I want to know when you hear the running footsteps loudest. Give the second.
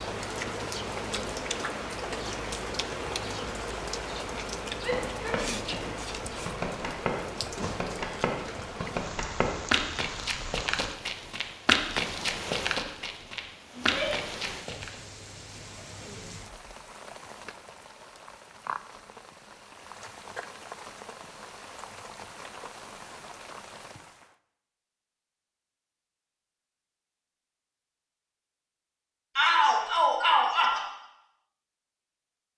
12 s.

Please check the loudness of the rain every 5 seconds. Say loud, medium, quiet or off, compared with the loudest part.
loud, loud, medium, medium, medium, off, off.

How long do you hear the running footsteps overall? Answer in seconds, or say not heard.
10 s.